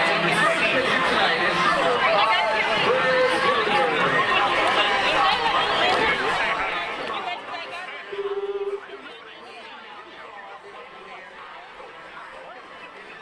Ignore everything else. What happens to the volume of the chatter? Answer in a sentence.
The loudness of the chatter goes down.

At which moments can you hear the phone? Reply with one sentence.
You can hear the phone from 8.1 to 9.0 s.